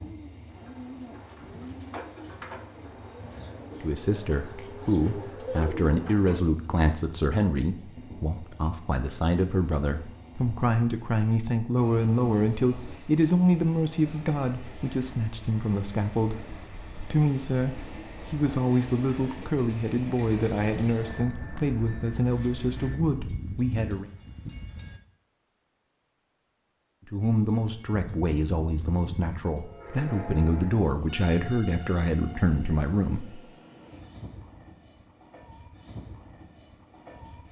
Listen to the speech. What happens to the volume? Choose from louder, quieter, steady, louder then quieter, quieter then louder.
steady.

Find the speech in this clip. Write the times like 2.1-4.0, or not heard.
3.8-24.1, 27.1-33.4.